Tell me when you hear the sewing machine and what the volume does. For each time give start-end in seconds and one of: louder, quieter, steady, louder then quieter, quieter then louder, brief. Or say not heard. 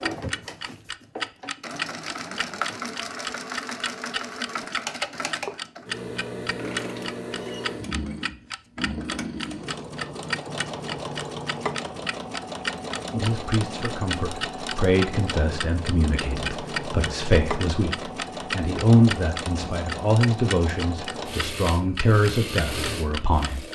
0.0-23.7 steady.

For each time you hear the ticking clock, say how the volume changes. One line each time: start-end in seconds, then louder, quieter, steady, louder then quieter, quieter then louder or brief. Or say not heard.
0.0-23.7 steady.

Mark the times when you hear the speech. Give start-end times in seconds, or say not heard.
13.1-23.6.